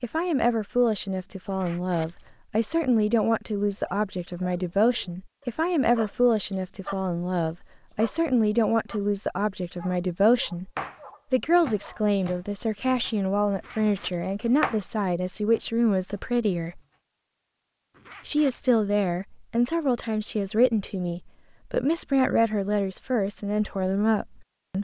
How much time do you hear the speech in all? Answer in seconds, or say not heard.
23 s.